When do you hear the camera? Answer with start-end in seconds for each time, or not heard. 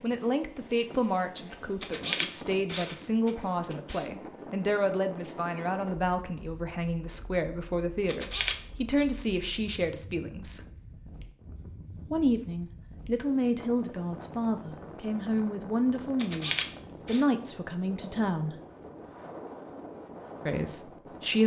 1.8-4.0, 8.1-9.1, 16.1-17.2.